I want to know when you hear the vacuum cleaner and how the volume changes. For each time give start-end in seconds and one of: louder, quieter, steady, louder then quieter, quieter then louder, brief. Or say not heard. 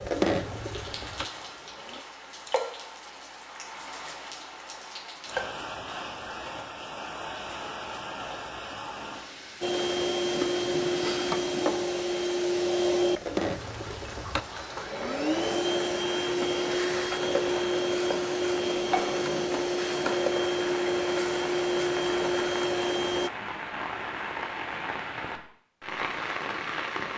0.0-2.0 brief
9.6-23.3 steady.